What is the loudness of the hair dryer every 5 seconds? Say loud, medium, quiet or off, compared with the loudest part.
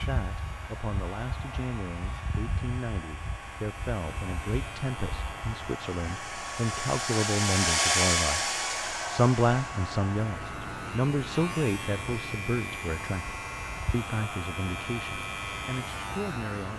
quiet, loud, quiet, quiet.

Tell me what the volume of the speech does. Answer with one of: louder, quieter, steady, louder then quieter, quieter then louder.
louder then quieter.